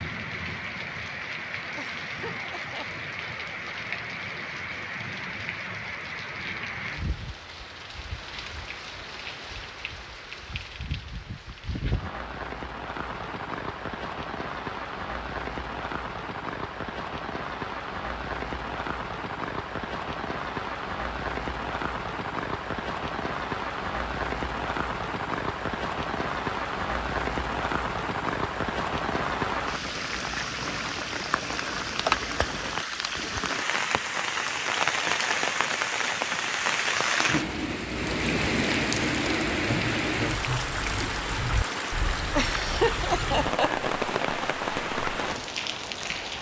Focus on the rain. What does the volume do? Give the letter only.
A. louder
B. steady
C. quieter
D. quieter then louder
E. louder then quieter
A.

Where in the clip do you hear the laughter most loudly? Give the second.
43 s.